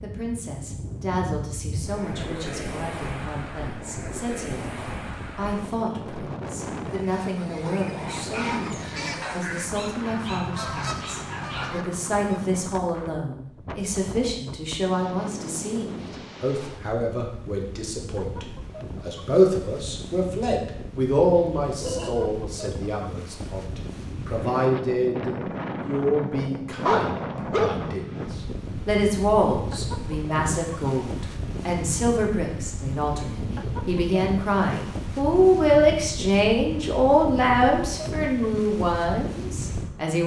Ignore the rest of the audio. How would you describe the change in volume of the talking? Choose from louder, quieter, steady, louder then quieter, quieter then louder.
louder.